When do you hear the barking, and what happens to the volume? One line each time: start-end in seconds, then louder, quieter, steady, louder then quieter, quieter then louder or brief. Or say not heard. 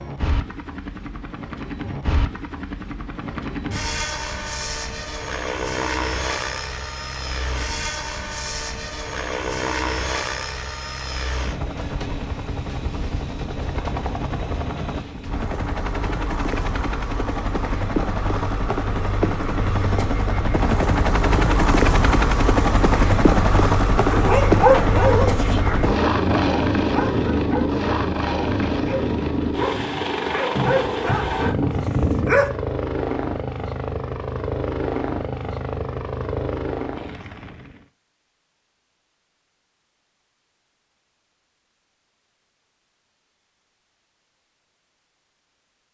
24.1-32.5 quieter then louder.